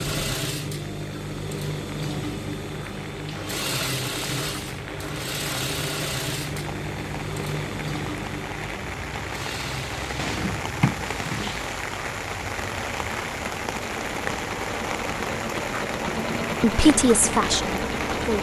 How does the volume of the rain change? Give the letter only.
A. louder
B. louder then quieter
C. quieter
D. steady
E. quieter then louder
A.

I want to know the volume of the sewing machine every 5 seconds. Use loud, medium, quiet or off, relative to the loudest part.
loud, loud, medium, loud.